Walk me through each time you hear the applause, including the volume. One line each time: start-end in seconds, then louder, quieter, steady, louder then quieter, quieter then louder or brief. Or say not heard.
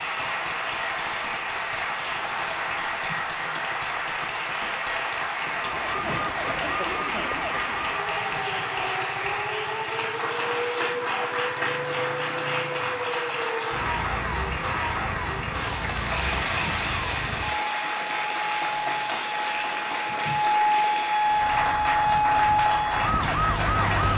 0.0-24.1 steady.